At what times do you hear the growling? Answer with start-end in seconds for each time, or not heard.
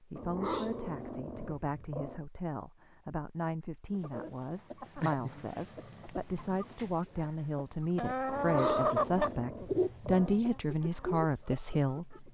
0.1-2.2, 5.0-6.6, 8.2-10.3.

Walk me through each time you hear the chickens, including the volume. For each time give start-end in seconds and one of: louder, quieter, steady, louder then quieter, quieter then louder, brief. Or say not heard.
3.9-12.2 louder then quieter.